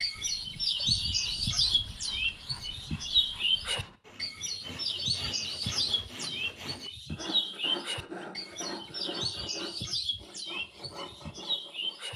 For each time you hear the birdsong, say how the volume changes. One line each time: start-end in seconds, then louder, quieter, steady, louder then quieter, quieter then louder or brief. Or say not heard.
0.0-12.1 quieter.